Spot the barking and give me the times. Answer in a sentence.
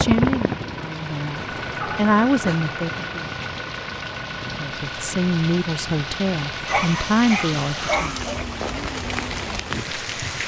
The barking can be heard from 1.8 to 2.6 s and from 6.7 to 8.4 s.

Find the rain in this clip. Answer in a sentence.
You can hear the rain from 0.0 to 10.4 s.